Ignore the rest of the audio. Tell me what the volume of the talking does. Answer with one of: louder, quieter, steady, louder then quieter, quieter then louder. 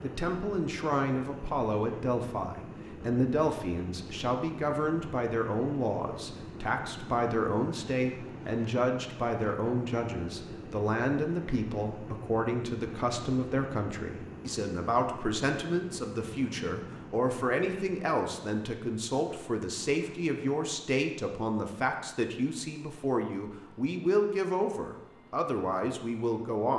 steady.